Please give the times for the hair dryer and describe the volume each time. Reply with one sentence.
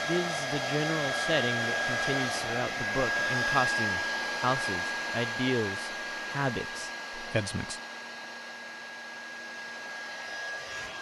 The hair dryer can be heard from 0.0 to 10.9 s, getting quieter.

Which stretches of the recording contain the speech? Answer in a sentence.
The speech can be heard from 0.1 to 7.8 s.